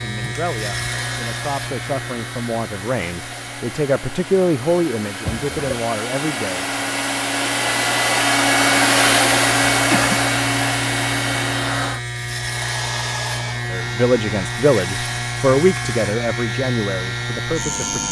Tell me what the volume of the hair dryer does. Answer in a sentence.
The volume of the hair dryer goes up, then down.